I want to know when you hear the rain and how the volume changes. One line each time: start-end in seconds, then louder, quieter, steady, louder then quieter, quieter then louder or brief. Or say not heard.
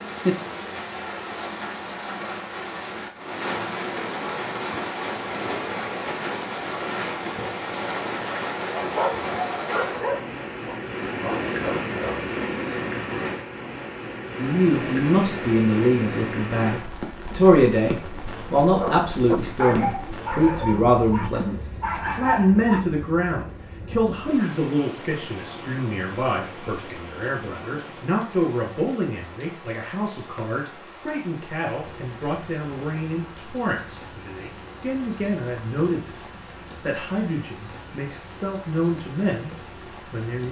0.0-40.4 quieter.